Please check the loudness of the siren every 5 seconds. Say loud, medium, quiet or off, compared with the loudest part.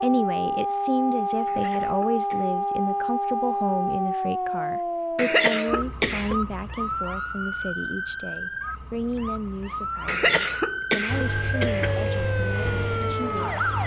loud, medium, loud.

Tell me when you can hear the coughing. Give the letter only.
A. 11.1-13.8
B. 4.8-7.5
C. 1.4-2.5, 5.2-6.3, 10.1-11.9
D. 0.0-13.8
C.